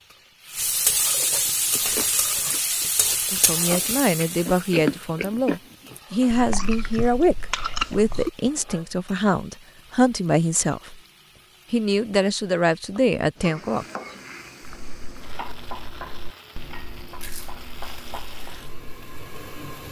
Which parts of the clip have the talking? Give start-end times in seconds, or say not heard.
3.3-11.0, 11.7-13.8.